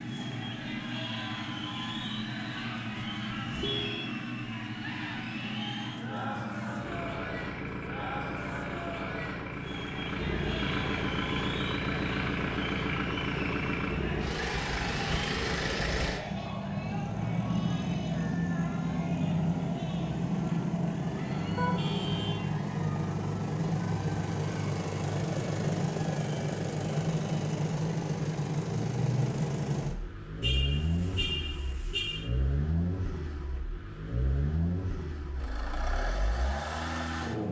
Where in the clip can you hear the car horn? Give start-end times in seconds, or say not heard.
3.5-4.1, 21.6-22.4, 30.4-32.2.